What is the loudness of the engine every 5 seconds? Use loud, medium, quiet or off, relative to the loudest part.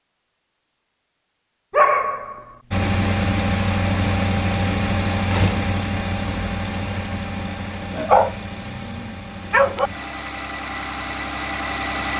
loud, medium, medium.